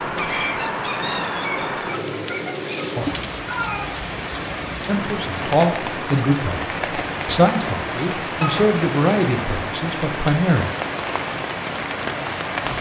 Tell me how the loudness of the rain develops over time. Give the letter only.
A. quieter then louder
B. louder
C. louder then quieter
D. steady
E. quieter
D.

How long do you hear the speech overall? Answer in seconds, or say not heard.
6 s.